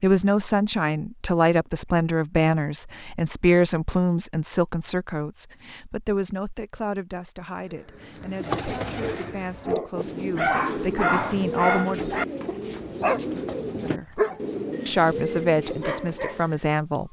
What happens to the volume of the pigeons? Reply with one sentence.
The volume of the pigeons stays about the same.